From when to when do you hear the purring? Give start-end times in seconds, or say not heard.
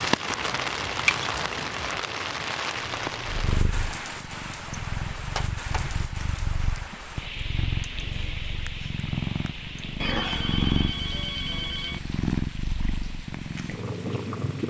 2.8-14.6.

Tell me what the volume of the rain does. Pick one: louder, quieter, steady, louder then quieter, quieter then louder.
quieter.